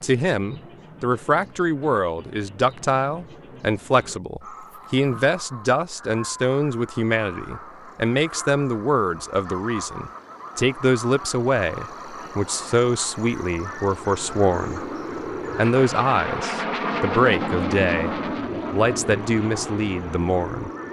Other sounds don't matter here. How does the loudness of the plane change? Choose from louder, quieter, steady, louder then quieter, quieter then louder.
louder then quieter.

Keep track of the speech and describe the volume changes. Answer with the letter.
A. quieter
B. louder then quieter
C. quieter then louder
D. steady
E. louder
D.